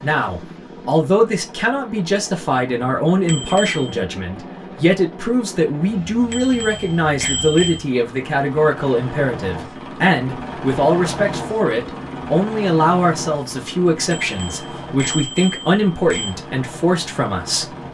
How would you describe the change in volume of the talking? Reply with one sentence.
The loudness of the talking stays about the same.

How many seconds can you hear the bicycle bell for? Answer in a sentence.
You can hear the bicycle bell for 4 seconds altogether.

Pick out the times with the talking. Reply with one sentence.
The talking can be heard from 0.0 to 17.6 s.